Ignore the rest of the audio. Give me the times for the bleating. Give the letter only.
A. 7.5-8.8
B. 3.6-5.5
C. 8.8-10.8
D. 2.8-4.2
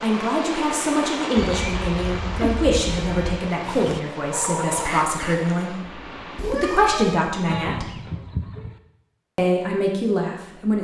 A.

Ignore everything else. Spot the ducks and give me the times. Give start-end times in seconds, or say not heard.
3.6-5.5.